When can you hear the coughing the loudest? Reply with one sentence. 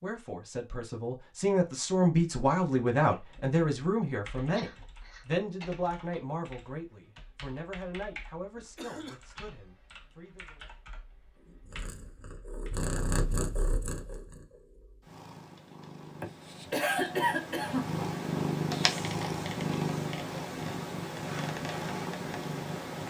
The loudest moment of the coughing is at 17 seconds.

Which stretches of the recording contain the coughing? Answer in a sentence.
The coughing can be heard from 4.5 to 5.7 s, from 8.6 to 9.2 s and from 16.2 to 17.9 s.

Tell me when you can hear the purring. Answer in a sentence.
The purring can be heard from 11.6 to 23.0 s.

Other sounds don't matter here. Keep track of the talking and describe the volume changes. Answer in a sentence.
The loudness of the talking goes down.